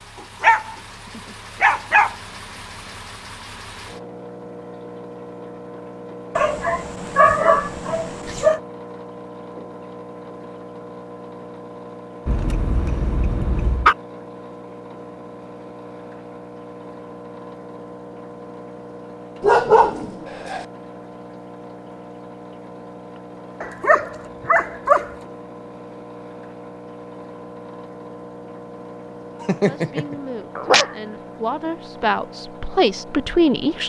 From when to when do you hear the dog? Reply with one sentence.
The dog can be heard from 0.4 to 2.1 s, from 6.3 to 8.6 s, from 12.2 to 13.9 s, from 19.4 to 20.6 s, from 23.6 to 25.1 s and from 29.4 to 30.9 s.